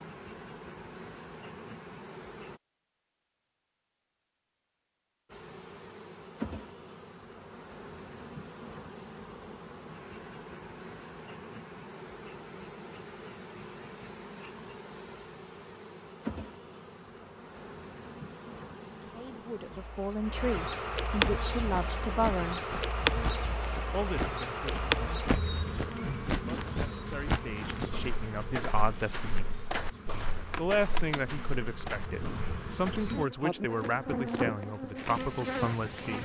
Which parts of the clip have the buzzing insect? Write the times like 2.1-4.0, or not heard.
0.0-2.6, 5.2-36.1.